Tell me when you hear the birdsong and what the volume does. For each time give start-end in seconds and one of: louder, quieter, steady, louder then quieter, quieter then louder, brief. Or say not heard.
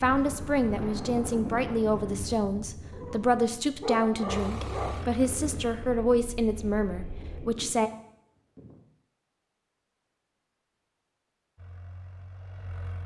not heard.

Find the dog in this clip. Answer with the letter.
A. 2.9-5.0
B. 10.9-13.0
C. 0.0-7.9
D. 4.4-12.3
A.